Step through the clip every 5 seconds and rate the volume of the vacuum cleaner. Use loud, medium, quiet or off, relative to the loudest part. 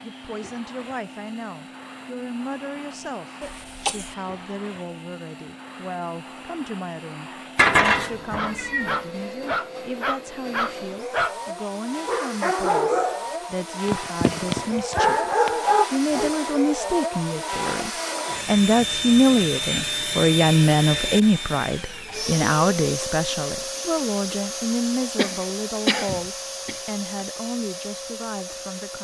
quiet, medium, medium, loud, loud, medium.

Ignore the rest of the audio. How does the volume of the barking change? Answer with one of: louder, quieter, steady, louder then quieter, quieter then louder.
louder.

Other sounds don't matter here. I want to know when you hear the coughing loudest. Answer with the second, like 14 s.
26 s.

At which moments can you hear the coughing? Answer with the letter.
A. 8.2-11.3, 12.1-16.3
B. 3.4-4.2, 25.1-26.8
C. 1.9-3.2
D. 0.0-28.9
B.